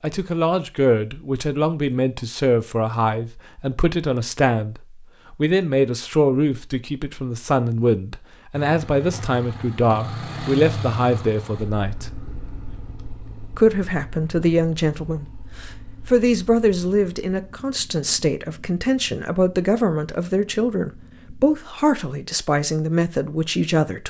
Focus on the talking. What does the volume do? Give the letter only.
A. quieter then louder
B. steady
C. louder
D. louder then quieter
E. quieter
B.